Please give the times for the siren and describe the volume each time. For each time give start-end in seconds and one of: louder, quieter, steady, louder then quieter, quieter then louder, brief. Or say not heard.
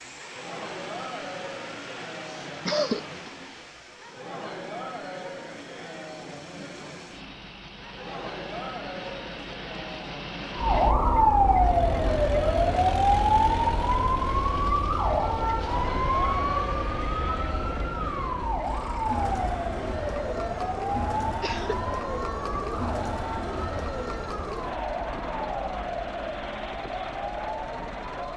10.6-28.3 quieter.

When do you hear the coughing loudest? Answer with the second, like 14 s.
3 s.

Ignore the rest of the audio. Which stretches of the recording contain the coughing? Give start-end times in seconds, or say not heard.
2.6-3.3, 21.4-21.8.